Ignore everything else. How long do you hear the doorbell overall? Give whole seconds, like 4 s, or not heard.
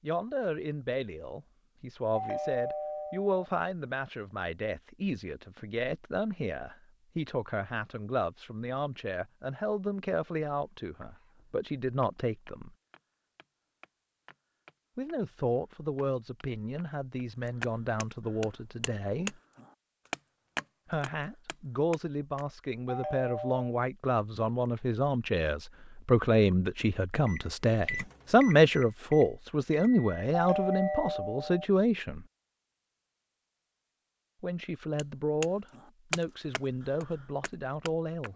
3 s.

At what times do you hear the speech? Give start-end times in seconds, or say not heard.
0.0-12.8, 14.9-19.4, 20.9-32.2, 34.4-38.3.